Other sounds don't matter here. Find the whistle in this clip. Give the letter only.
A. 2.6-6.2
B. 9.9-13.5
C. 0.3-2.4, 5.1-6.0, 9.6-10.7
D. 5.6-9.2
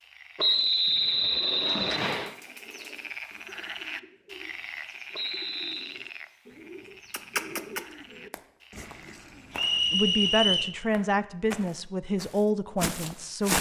C.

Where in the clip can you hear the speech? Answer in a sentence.
The speech can be heard from 9.9 to 13.5 s.